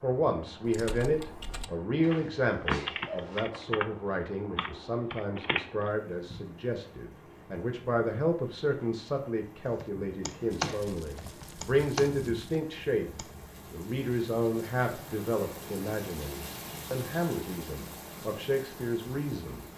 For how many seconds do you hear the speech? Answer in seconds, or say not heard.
20 s.